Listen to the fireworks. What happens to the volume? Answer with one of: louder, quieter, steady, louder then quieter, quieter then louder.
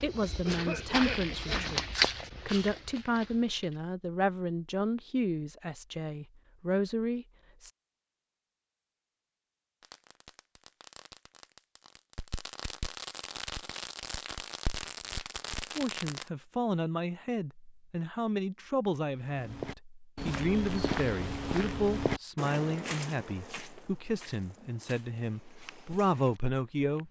louder.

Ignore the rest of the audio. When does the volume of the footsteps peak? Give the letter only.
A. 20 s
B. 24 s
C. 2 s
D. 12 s
C.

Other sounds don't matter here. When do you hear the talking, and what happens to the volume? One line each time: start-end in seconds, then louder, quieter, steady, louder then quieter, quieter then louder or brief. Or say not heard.
0.0-7.7 steady
15.7-27.0 steady.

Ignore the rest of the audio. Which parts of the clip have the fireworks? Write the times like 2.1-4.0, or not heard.
9.8-16.3.